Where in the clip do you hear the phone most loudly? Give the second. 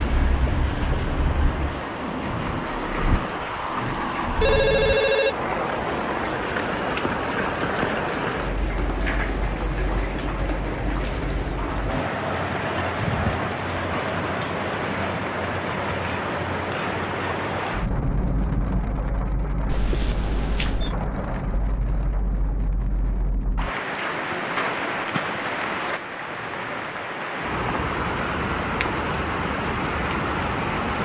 5 s.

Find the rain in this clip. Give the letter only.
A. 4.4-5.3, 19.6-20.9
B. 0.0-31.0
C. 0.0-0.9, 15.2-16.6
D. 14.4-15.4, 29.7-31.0
B.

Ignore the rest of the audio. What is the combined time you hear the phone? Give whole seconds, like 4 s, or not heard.
2 s.